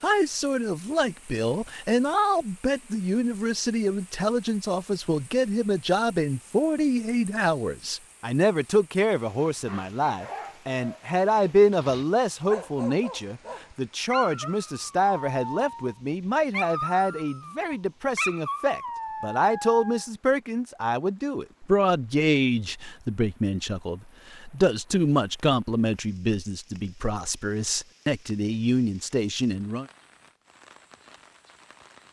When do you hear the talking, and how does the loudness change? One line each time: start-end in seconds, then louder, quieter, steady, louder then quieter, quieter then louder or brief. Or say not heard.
0.0-29.9 steady.